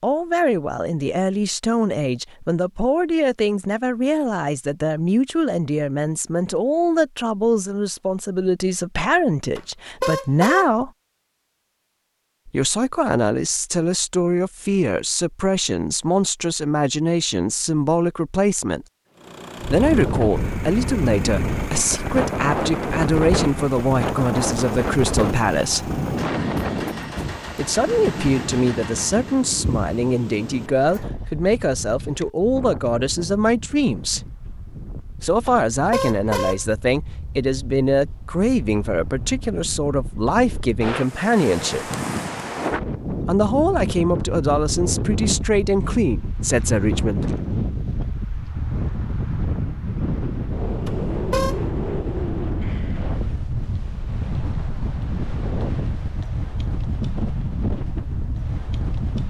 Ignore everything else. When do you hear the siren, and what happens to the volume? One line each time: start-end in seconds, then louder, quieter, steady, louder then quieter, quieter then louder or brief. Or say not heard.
not heard.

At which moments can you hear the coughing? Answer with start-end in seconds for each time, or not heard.
not heard.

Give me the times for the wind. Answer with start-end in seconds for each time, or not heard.
19.6-59.2.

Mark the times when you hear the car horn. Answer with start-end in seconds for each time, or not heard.
9.6-10.7, 35.5-36.6, 50.9-51.6.